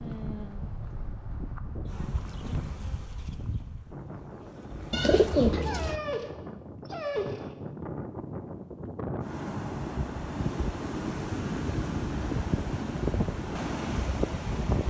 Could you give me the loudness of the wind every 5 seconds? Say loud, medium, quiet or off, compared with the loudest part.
medium, medium, loud.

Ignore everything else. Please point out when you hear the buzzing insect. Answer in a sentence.
You can hear the buzzing insect from 1.9 to 5.5 s.